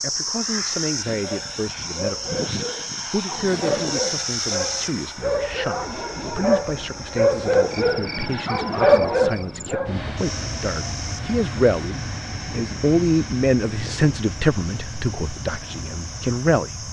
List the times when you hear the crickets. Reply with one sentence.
You can hear the crickets from 0.0 to 16.8 s.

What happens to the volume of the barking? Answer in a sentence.
The loudness of the barking goes up.